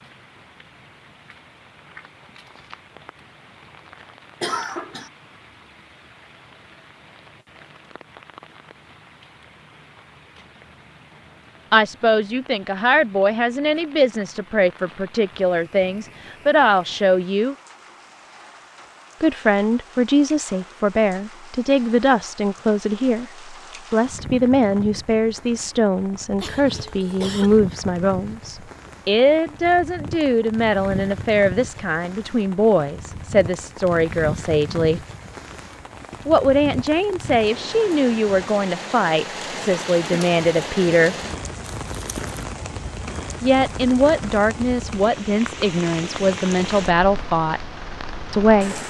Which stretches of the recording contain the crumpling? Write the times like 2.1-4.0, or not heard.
2.5-3.0, 41.6-42.4.